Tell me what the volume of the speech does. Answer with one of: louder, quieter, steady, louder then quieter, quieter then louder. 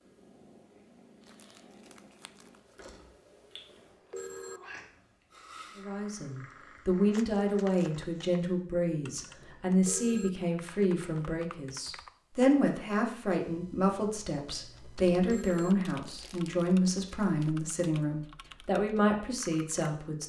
steady.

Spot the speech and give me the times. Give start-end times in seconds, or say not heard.
5.8-20.2.